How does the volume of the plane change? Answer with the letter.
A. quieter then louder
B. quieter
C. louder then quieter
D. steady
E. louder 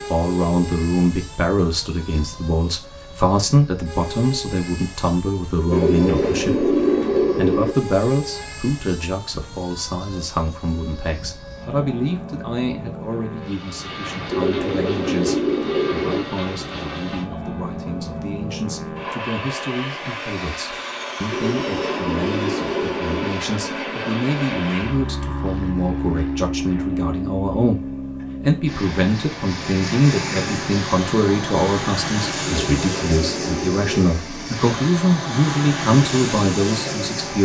E.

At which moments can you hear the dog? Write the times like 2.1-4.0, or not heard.
not heard.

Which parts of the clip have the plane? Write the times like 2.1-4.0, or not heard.
0.0-37.3.